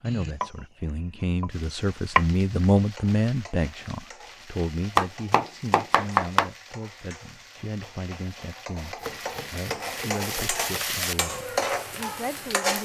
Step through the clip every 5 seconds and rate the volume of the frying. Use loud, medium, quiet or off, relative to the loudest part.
quiet, quiet, loud.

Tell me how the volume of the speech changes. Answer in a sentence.
The volume of the speech goes down.